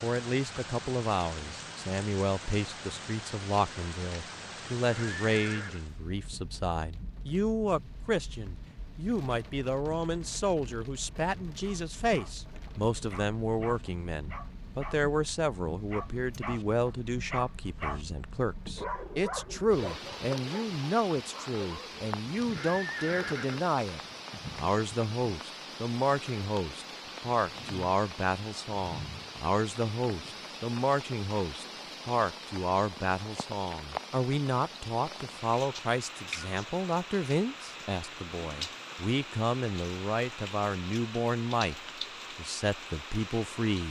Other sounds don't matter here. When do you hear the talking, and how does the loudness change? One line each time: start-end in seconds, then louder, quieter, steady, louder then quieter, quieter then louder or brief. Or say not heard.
0.0-43.8 steady.